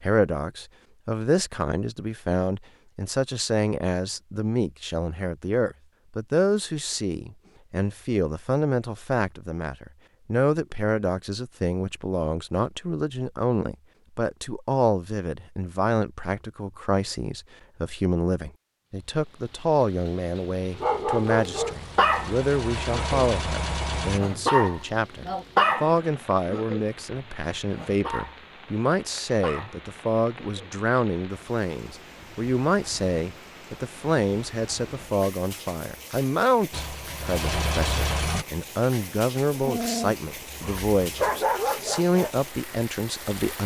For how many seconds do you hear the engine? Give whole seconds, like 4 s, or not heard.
5 s.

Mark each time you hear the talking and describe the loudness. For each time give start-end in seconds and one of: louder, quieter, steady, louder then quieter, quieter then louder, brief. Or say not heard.
0.0-43.6 steady.